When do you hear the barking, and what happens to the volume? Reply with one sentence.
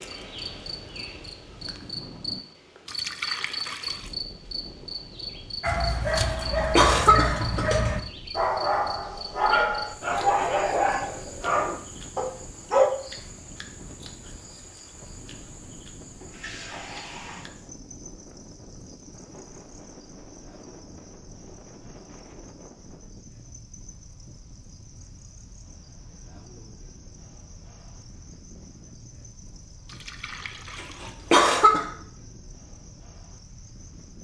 The barking can be heard from 5.6 to 12.9 s, at a steady volume.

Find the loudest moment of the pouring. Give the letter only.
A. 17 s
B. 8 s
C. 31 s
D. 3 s
D.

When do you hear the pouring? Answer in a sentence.
You can hear the pouring from 2.9 to 4.2 s, from 16.2 to 17.5 s and from 29.9 to 31.1 s.